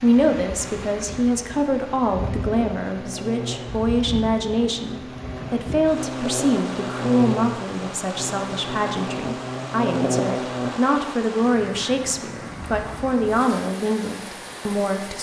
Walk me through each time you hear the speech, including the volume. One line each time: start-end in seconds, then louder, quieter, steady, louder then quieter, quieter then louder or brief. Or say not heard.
0.0-15.1 steady.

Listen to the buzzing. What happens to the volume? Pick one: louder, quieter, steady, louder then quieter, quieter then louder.
louder.